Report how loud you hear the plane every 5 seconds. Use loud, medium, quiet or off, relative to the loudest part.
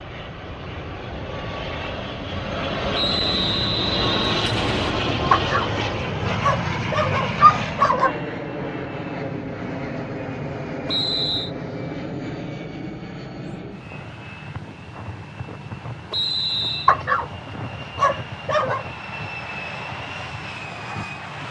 loud, loud, medium, medium, medium.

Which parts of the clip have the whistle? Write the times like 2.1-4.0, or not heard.
2.9-5.0, 10.8-11.5, 16.1-16.9.